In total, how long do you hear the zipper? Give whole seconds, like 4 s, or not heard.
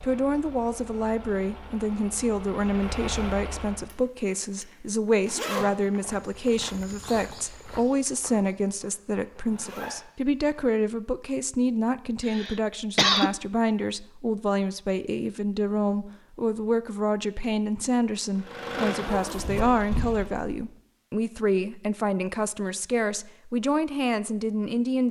4 s.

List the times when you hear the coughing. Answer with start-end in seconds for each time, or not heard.
12.2-13.3.